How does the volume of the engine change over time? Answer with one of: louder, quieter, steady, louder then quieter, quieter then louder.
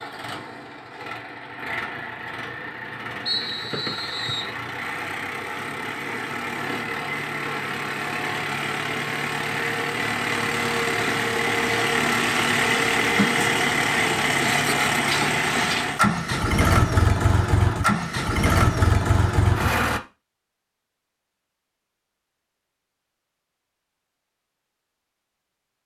louder.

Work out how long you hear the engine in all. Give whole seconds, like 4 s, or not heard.
20 s.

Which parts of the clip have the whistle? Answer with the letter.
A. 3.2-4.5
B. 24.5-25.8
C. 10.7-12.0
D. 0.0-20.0
A.